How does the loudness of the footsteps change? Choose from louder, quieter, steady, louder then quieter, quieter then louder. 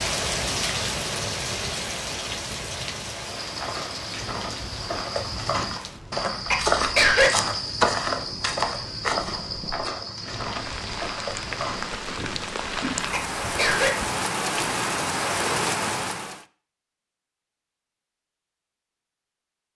louder then quieter.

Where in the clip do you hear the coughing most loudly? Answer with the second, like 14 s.
7 s.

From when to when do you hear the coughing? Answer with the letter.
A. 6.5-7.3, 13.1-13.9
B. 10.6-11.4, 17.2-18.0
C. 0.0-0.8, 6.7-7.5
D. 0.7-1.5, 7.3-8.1
A.